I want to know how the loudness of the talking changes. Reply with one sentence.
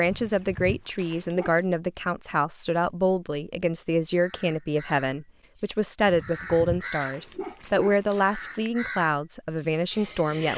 The volume of the talking stays about the same.